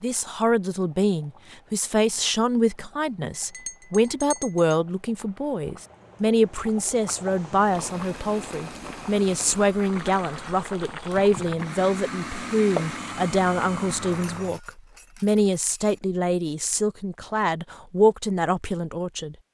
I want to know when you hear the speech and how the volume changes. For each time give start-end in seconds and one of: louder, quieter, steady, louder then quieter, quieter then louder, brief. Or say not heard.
0.0-19.4 steady.